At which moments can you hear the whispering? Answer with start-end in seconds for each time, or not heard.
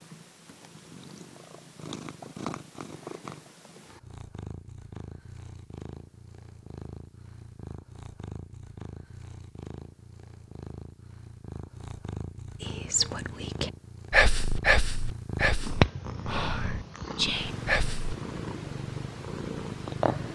12.6-18.1.